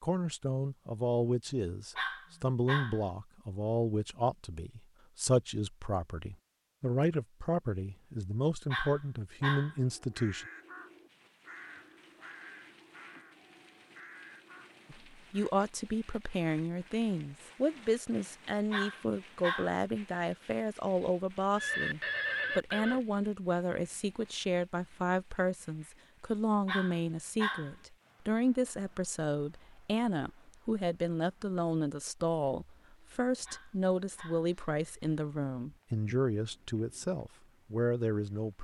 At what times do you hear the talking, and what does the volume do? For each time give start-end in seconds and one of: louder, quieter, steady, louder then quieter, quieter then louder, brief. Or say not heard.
0.0-10.4 steady
14.9-38.6 steady.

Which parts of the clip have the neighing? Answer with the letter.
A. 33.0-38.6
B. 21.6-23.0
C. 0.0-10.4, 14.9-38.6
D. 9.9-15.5
B.